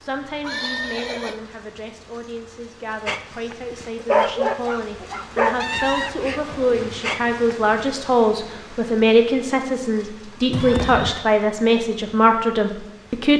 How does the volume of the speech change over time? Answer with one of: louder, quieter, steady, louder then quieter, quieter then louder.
louder.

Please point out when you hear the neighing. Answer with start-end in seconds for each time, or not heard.
0.4-1.4, 5.6-6.9, 10.5-11.2.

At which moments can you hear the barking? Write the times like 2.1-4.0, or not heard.
3.0-7.8.